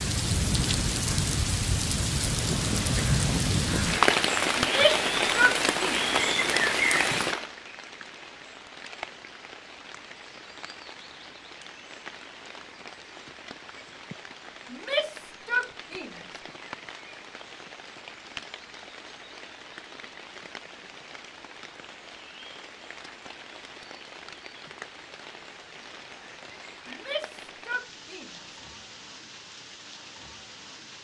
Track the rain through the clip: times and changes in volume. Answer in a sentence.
The rain can be heard from 0.0 to 31.0 s, getting quieter.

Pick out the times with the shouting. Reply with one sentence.
The shouting can be heard from 4.6 to 6.0 s, from 14.7 to 16.2 s and from 26.9 to 28.4 s.